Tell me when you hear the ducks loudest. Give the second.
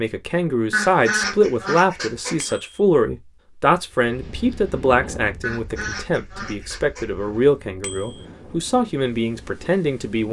1 s.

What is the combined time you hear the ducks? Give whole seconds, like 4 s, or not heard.
4 s.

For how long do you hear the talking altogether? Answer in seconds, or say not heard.
10 s.